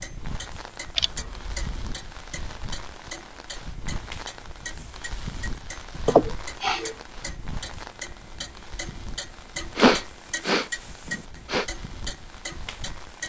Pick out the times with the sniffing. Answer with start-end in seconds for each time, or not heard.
0.9-1.6, 6.0-7.0, 9.8-11.7.